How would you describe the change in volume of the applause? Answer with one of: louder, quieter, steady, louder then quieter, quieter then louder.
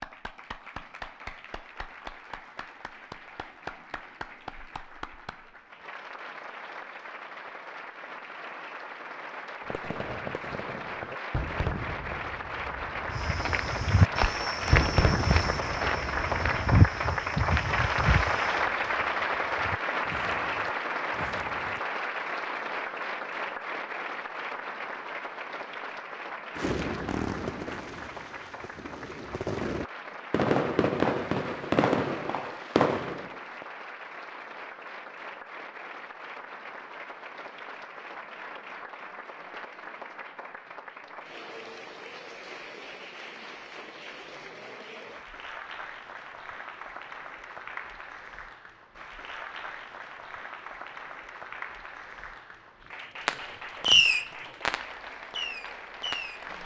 louder then quieter.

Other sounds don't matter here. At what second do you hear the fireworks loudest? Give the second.
54 s.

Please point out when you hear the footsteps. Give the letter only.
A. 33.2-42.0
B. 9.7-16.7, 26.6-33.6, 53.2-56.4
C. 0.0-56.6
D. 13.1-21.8
D.